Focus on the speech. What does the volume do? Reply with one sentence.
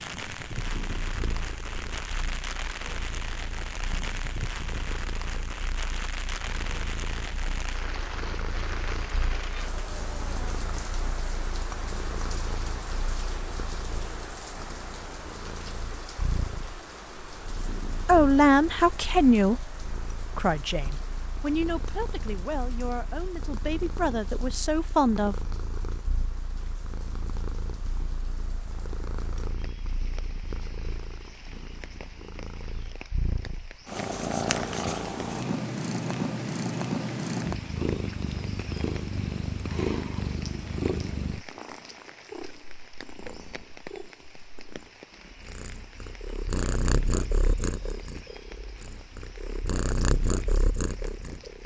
The volume of the speech goes down, then up.